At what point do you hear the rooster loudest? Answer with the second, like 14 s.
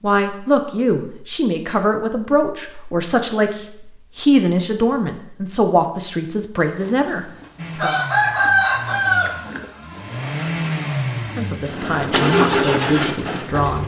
9 s.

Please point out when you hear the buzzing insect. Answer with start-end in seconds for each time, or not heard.
not heard.